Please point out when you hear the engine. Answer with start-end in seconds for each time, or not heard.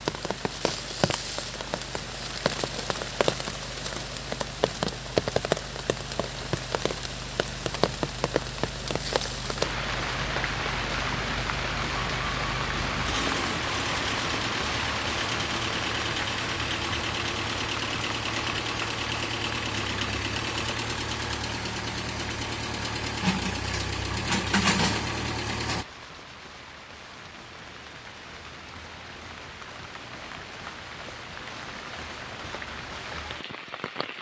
0.0-25.9.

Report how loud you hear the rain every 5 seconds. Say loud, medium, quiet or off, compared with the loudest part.
loud, loud, loud, loud, medium, quiet, medium.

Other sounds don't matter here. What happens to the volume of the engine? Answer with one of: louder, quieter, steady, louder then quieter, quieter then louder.
louder.